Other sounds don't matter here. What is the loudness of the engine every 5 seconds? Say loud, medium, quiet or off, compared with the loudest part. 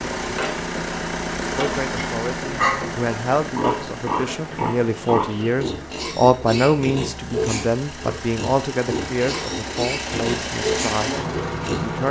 loud, medium, loud.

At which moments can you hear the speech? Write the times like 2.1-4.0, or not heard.
1.6-12.0.